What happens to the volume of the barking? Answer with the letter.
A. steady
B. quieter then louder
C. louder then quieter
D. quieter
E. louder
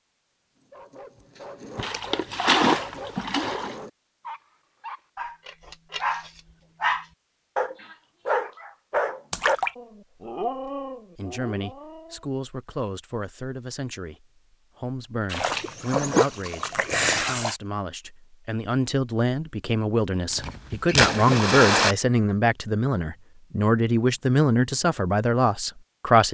C.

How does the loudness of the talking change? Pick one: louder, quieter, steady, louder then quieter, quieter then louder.
louder.